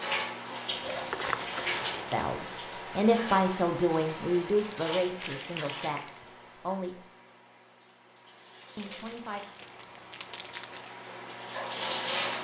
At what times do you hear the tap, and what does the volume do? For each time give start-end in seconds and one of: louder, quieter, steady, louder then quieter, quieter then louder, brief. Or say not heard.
0.0-12.3 quieter then louder.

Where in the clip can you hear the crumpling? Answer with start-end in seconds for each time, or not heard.
0.7-2.4, 4.5-6.2, 8.8-10.9.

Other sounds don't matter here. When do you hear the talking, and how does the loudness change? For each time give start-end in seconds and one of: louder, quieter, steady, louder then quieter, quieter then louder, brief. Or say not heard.
2.1-7.0 quieter
8.8-9.4 brief.